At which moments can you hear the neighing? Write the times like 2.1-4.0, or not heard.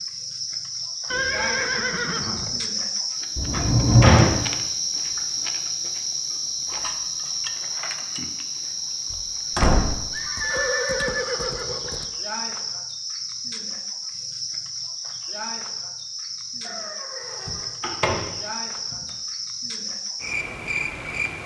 1.1-2.6, 10.1-12.1, 16.6-17.8.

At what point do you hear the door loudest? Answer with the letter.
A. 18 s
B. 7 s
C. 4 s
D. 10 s
C.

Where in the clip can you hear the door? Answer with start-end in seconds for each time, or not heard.
3.4-4.4, 9.1-10.1, 17.4-18.2.